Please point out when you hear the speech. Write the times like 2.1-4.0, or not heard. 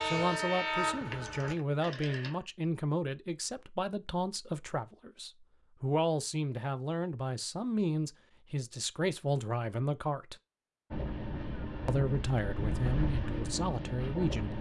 0.0-10.3, 11.8-14.5.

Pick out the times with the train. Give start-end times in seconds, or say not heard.
0.0-1.6, 10.9-14.5.